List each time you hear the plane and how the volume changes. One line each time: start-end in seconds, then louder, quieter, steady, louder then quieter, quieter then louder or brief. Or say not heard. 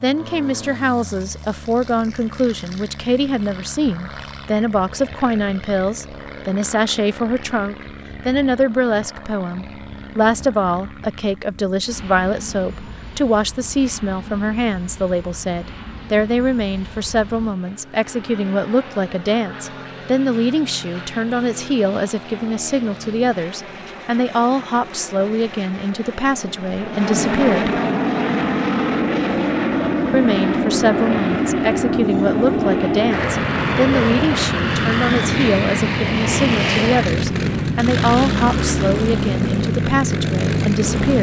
0.0-41.1 louder.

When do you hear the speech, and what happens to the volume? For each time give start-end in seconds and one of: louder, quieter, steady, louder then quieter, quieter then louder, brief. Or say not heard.
0.0-27.8 steady
30.1-41.1 steady.